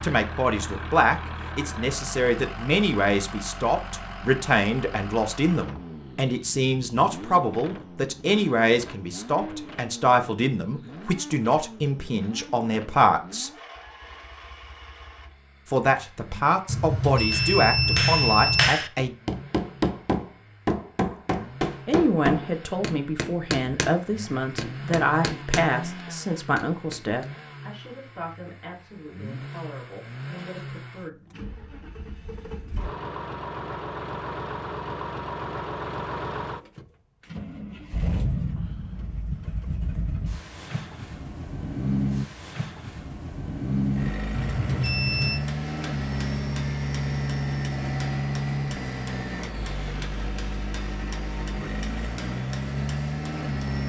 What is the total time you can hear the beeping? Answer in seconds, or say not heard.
3 s.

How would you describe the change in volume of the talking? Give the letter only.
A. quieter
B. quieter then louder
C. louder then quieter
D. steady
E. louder
A.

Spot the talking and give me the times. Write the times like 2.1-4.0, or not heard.
0.0-13.5, 15.7-19.1, 21.9-31.1.